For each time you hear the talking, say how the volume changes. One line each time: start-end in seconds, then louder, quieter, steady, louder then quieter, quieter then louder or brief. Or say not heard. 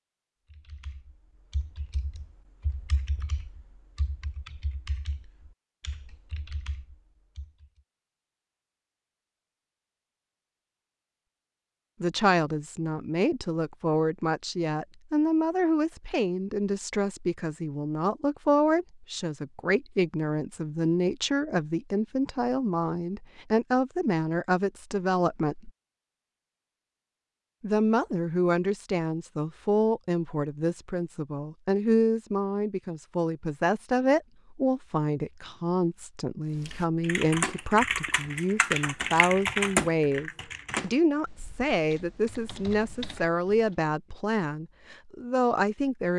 12.0-25.7 steady
27.6-46.1 steady.